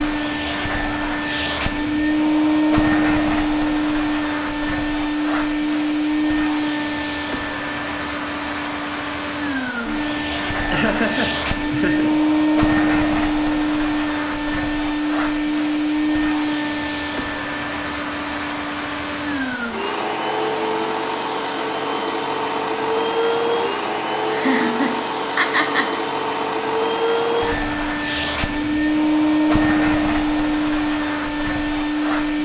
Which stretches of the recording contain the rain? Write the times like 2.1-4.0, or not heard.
not heard.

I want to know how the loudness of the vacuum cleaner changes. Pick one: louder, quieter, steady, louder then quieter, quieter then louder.
steady.